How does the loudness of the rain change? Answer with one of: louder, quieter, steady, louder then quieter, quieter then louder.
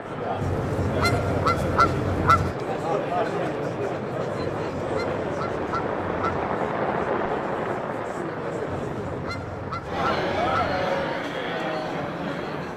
louder then quieter.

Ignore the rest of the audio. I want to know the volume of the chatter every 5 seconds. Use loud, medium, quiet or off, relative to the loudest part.
loud, medium, loud.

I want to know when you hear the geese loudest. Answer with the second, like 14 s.
2 s.